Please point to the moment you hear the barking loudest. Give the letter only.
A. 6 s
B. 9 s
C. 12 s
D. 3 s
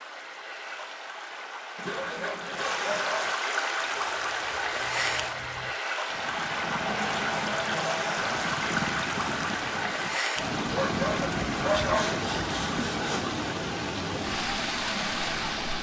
C.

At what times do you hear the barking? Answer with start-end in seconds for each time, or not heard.
1.9-3.3, 10.7-12.1.